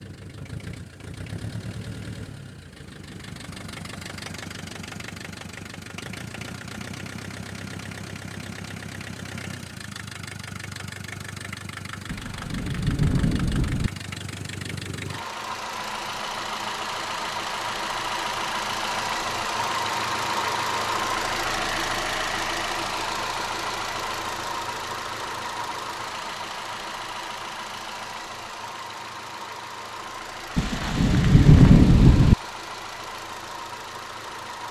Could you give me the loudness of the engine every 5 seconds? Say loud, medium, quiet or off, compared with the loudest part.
medium, medium, medium, loud, loud, medium, medium.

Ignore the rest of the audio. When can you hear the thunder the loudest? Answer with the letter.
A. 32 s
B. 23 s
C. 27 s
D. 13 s
A.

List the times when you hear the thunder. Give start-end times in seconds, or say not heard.
12.1-13.9, 30.6-32.4.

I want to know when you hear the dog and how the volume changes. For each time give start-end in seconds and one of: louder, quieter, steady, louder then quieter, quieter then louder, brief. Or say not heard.
not heard.